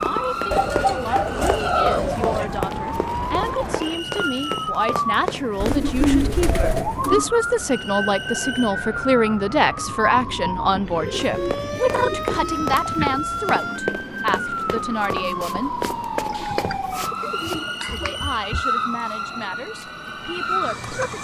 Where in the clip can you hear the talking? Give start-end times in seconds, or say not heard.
0.0-15.8, 17.8-21.2.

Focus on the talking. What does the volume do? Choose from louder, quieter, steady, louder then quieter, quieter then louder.
louder then quieter.